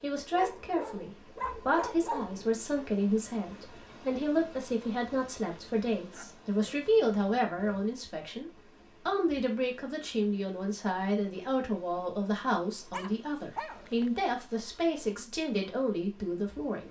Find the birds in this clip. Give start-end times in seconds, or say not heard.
not heard.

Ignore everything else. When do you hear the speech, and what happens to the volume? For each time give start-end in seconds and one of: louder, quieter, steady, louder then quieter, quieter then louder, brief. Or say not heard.
0.0-16.8 steady.